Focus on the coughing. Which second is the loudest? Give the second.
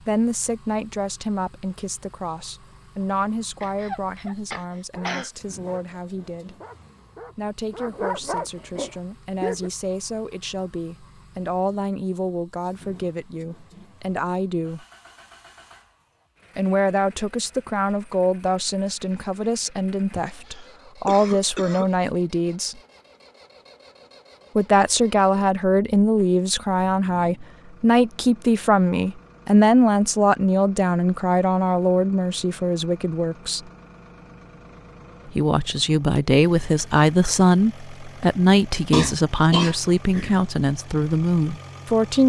39 s.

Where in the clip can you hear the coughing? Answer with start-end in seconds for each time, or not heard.
3.6-5.3, 20.1-21.9, 38.9-40.4.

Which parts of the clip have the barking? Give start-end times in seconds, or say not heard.
4.5-9.7.